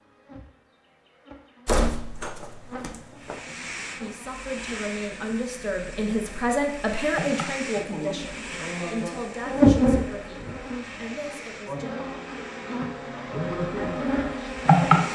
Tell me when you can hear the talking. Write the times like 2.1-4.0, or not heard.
4.0-12.1.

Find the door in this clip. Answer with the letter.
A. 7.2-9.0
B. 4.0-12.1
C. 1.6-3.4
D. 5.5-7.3
C.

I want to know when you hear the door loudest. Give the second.
2 s.